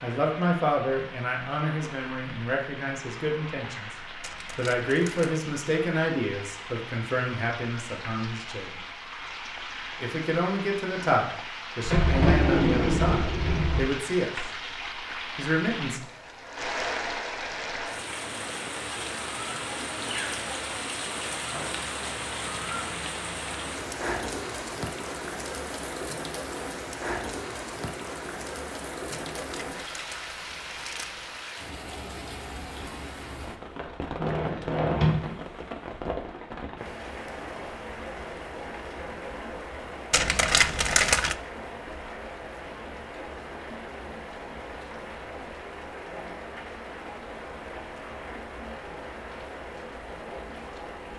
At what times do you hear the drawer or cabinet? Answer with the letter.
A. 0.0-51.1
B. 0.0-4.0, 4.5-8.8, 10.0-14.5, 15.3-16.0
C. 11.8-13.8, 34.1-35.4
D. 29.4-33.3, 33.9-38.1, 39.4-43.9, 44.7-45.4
C.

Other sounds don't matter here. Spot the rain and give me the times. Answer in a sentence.
You can hear the rain from 0.0 to 51.1 s.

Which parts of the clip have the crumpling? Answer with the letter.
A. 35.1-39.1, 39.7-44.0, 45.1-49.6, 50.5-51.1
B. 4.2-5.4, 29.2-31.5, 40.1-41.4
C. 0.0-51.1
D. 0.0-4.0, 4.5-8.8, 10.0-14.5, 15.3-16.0
B.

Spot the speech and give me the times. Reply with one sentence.
You can hear the speech from 0.0 to 4.0 s, from 4.5 to 8.8 s, from 10.0 to 14.5 s and from 15.3 to 16.0 s.